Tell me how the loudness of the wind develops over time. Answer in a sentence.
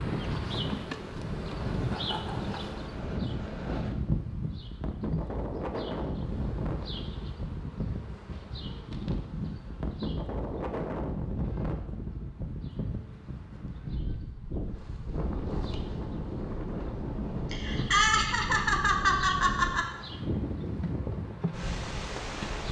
The loudness of the wind stays about the same.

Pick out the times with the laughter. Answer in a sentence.
The laughter can be heard from 1.9 to 2.8 s and from 17.5 to 19.9 s.